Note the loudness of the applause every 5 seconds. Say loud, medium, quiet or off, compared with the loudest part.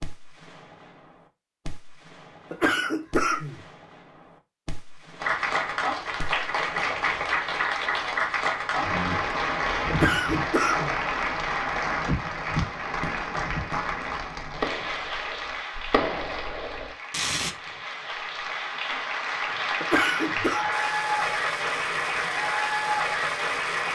off, loud, loud, medium, loud.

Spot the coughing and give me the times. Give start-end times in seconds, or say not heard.
2.5-3.6, 9.9-11.0, 19.8-20.6.